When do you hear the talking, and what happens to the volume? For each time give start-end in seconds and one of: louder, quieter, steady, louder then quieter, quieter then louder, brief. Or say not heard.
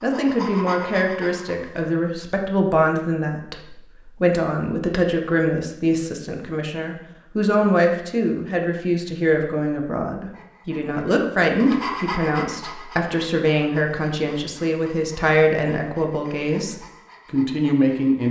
0.0-18.2 steady.